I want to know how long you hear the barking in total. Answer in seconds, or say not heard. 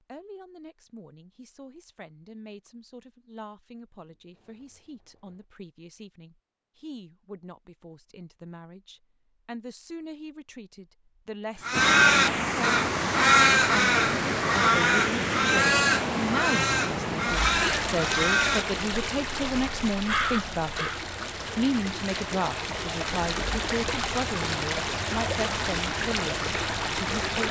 not heard.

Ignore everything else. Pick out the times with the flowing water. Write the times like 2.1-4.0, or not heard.
11.7-27.4.